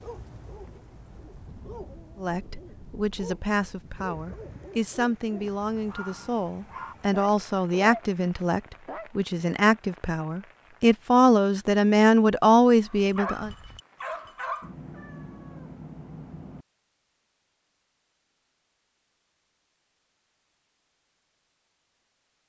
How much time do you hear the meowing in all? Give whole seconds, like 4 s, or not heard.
2 s.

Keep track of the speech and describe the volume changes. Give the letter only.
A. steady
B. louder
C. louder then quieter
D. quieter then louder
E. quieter
B.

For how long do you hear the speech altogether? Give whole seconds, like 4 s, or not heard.
11 s.